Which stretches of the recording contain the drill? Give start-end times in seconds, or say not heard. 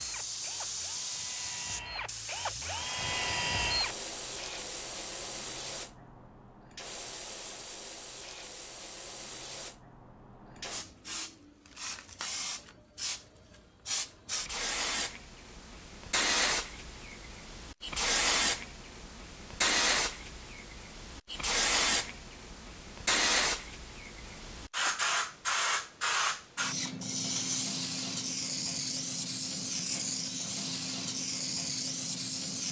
0.0-4.0.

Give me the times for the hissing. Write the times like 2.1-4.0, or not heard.
0.0-32.6.